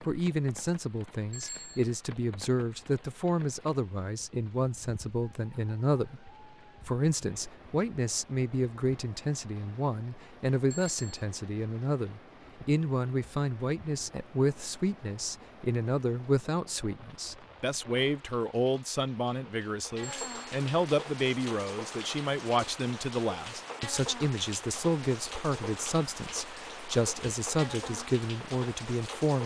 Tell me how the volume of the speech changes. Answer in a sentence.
The volume of the speech stays about the same.